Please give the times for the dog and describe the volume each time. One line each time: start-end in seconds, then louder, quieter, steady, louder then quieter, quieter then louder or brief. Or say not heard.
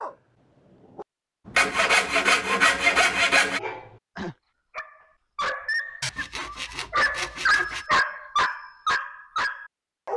0.0-10.1 louder.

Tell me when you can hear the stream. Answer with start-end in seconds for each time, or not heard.
not heard.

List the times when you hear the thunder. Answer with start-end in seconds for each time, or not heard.
not heard.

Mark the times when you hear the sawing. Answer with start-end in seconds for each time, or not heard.
1.6-3.6, 6.0-7.8.